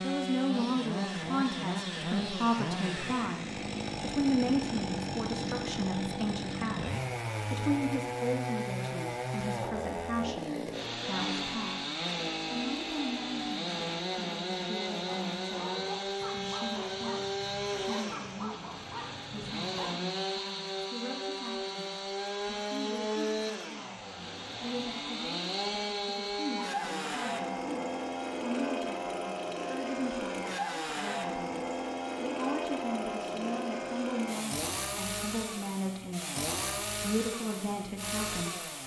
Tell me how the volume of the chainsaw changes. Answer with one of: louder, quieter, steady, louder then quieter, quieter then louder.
steady.